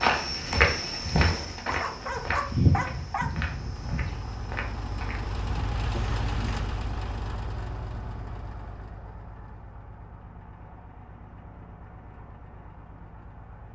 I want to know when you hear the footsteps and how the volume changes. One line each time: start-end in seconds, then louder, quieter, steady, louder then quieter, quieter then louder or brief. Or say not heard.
0.0-6.7 quieter.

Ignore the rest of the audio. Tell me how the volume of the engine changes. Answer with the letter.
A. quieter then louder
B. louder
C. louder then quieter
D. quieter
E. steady
C.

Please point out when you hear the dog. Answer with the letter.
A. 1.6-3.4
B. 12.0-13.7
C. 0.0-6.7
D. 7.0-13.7
A.